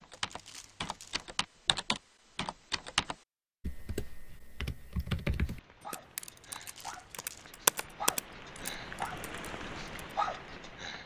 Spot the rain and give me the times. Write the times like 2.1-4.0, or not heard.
5.3-11.0.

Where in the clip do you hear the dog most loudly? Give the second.
10 s.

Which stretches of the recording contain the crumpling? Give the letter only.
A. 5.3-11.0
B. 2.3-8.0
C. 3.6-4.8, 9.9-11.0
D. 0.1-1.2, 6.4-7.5
D.